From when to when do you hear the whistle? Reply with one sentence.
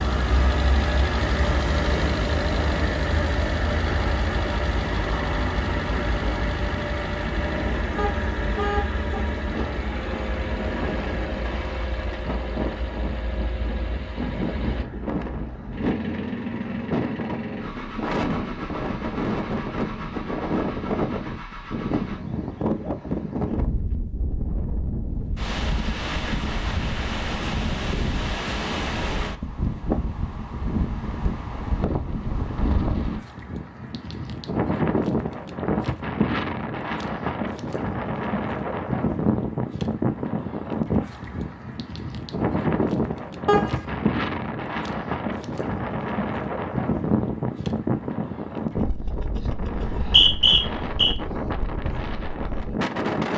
The whistle can be heard from 49.7 to 51.1 s.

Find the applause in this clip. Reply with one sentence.
You can't hear the applause here.